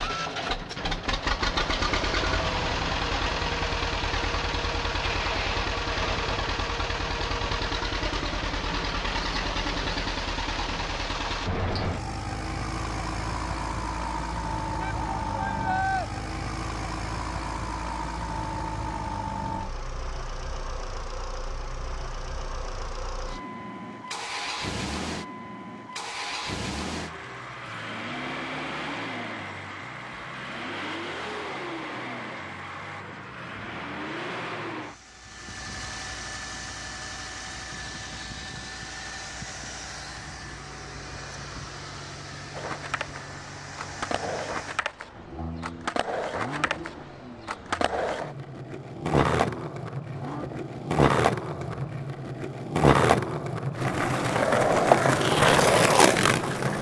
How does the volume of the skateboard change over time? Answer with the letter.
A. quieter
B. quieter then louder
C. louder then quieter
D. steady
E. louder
E.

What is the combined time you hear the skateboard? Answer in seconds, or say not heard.
14 s.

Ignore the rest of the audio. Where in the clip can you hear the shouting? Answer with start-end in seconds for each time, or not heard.
14.8-16.1.